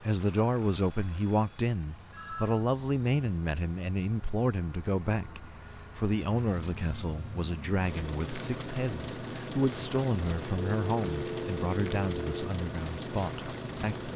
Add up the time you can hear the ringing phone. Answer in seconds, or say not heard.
5 s.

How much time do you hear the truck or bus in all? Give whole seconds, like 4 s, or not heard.
14 s.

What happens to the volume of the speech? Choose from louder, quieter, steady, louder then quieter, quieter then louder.
quieter.